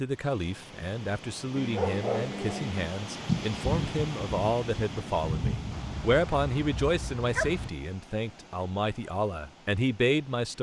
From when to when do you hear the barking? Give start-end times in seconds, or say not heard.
1.6-2.9, 5.7-7.7.